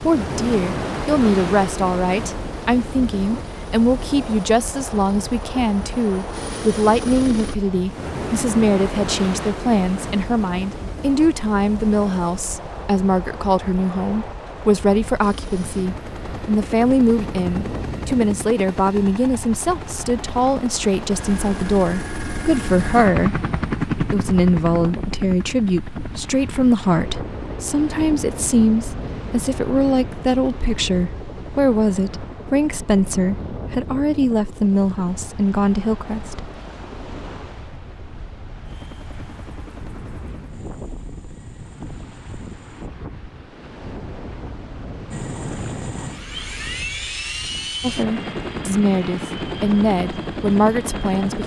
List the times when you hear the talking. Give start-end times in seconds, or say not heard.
0.0-36.5, 47.8-51.4.